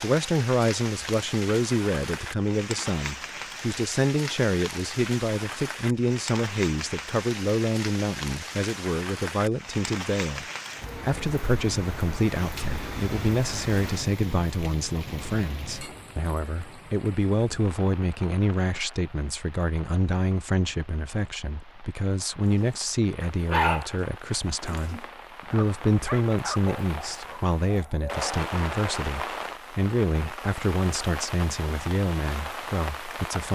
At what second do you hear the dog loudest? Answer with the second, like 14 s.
24 s.